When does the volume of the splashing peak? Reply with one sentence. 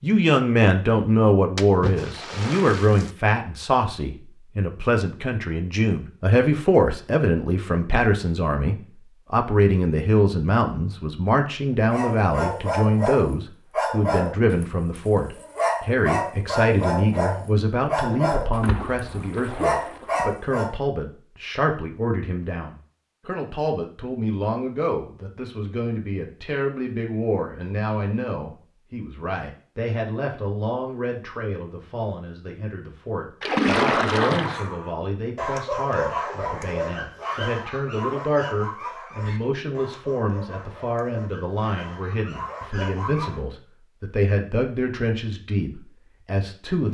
The volume of the splashing peaks at 34 seconds.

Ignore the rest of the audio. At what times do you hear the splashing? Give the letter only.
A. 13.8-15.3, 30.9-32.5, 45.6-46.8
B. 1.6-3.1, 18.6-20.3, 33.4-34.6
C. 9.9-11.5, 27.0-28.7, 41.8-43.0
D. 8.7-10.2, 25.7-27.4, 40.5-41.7
B.